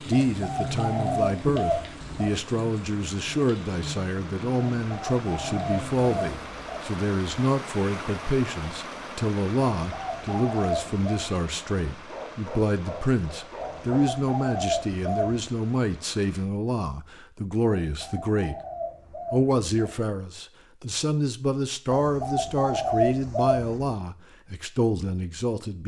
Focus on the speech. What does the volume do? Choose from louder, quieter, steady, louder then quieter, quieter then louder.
steady.